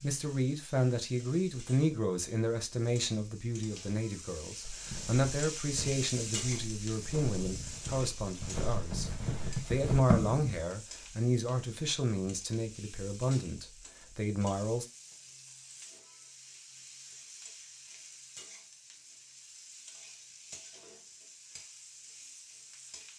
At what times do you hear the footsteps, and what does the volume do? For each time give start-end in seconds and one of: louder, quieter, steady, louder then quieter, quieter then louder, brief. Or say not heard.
4.6-10.6 quieter then louder.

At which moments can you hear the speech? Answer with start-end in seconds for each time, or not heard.
0.0-14.8.